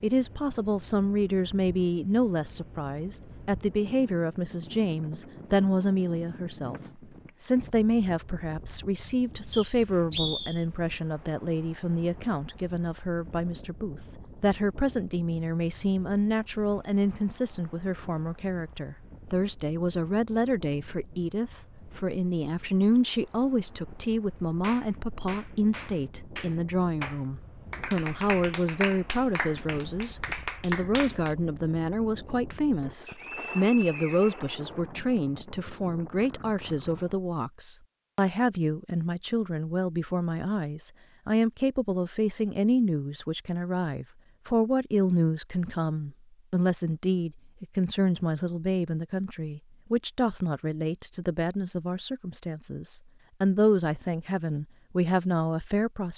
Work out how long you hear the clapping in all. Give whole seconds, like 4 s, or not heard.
7 s.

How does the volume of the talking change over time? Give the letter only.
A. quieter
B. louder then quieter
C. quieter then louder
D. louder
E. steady
E.